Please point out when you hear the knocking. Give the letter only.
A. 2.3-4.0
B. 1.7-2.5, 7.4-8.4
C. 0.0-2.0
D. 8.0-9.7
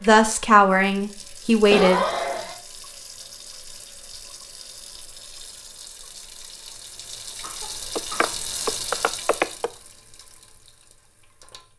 D.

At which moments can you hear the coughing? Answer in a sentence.
The coughing can be heard from 1.7 to 2.5 s and from 7.4 to 8.4 s.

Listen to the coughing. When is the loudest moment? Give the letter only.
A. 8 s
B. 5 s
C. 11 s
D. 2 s
D.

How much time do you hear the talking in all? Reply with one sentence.
You can hear the talking for 2 seconds altogether.